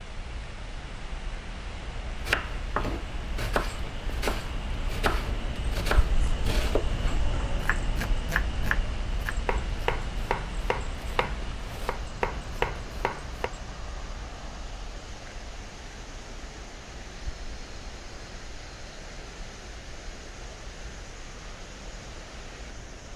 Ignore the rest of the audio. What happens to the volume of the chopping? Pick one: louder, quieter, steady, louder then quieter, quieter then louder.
steady.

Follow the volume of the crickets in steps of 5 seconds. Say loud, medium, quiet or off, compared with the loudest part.
medium, loud, medium, quiet, quiet.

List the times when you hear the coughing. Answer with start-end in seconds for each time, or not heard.
not heard.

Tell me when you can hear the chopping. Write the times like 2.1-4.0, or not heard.
2.2-13.5.